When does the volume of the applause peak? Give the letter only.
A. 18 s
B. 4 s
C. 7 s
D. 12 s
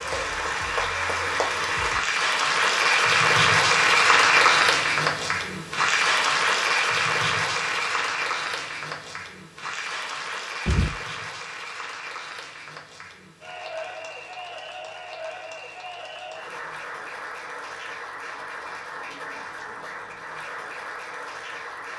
B.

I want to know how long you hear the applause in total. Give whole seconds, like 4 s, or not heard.
22 s.